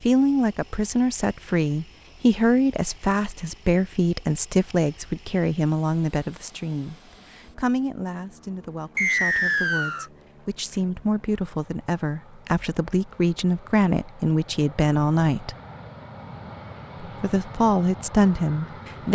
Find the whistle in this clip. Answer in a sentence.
The whistle can be heard from 8.9 to 10.1 s.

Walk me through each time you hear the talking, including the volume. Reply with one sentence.
The talking can be heard from 0.0 to 15.6 s, getting quieter then louder; and briefly from 17.0 to 19.0 s.